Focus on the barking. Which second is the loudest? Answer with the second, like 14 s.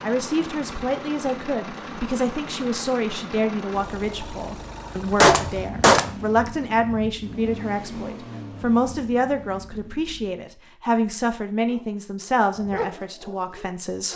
13 s.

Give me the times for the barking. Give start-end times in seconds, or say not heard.
11.7-14.1.